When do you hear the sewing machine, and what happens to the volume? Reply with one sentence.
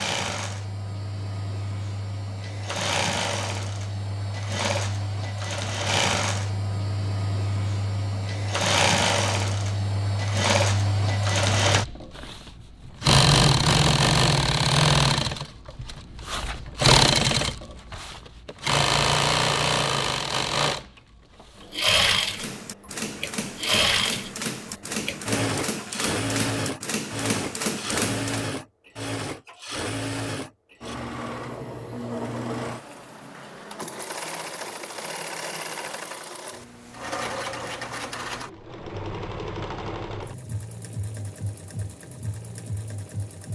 You can hear the sewing machine from 0.0 to 43.5 s, getting louder then quieter.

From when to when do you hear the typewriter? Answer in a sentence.
You can hear the typewriter from 22.3 to 28.4 s.